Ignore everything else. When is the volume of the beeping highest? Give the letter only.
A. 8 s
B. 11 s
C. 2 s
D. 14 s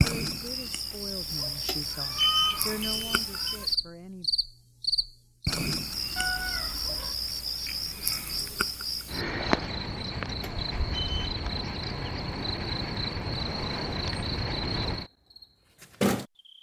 C.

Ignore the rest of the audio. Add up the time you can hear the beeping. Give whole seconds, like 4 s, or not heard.
3 s.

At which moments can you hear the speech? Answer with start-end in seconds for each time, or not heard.
0.0-4.3.